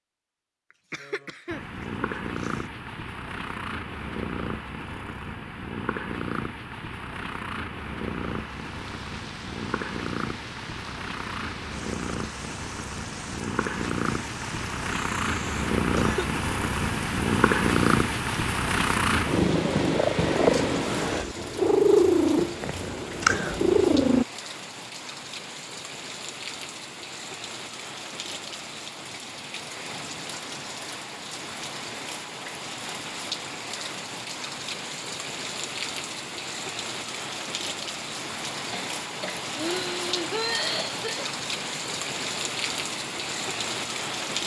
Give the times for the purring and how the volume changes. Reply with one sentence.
You can hear the purring from 1.4 to 24.2 s, getting louder.